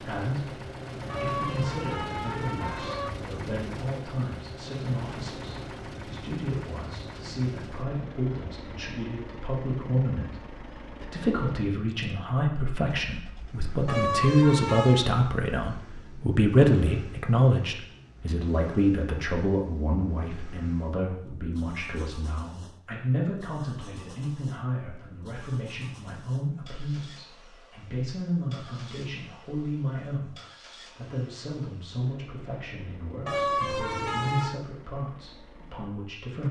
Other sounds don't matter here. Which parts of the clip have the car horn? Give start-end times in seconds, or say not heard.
1.1-3.1, 13.8-15.1, 33.2-34.6.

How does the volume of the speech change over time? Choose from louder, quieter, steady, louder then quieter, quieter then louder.
louder then quieter.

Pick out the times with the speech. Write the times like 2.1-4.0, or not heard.
0.0-30.4, 30.9-36.4.